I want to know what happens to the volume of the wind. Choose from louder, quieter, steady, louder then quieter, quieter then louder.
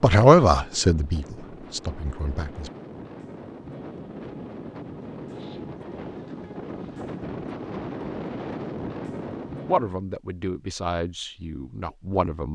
louder.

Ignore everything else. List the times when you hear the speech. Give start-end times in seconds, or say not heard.
0.0-2.7, 9.7-12.5.